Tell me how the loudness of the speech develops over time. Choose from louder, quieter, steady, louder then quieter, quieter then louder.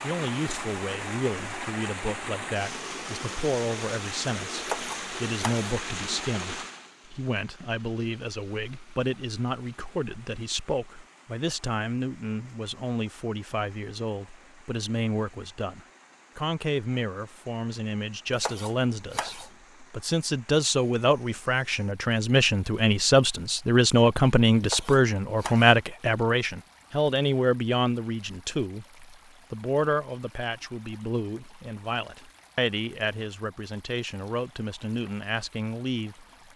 louder then quieter.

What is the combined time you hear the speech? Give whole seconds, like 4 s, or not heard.
36 s.